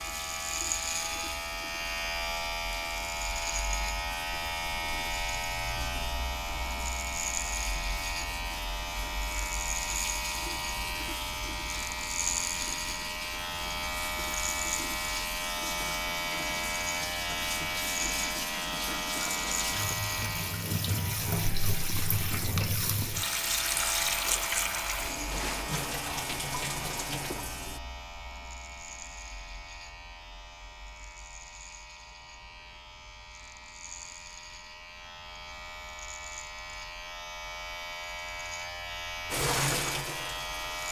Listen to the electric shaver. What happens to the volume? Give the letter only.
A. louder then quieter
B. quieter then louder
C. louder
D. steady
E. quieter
E.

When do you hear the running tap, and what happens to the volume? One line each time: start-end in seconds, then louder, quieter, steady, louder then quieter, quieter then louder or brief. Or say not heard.
0.0-27.8 louder
39.3-40.8 brief.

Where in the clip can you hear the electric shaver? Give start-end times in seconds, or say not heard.
0.0-40.8.